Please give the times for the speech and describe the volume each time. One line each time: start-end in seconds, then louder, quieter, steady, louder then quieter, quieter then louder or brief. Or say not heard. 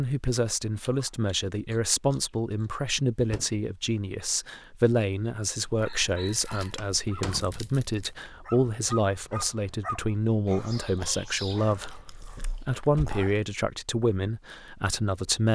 0.0-15.5 steady.